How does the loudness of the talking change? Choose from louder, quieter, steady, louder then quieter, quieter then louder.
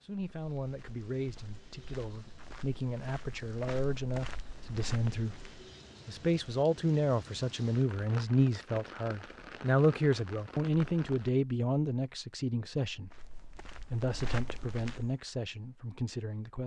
louder then quieter.